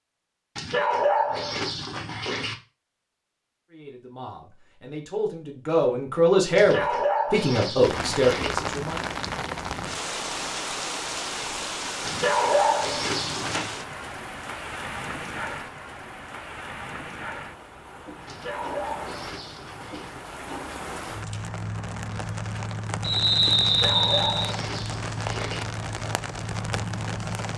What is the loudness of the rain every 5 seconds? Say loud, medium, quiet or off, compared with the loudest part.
off, loud, loud, medium, loud, loud.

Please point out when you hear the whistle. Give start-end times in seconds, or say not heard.
23.0-24.6.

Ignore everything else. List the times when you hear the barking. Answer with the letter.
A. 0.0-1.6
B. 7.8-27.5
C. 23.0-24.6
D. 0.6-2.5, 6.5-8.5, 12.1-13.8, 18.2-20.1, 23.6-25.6
D.